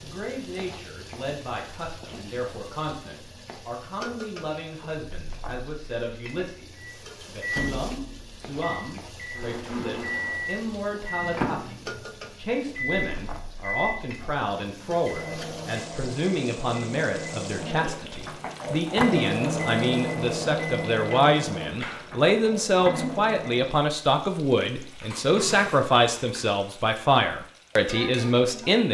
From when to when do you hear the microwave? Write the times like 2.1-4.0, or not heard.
6.8-23.9.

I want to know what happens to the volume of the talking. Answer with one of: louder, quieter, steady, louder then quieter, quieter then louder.
louder.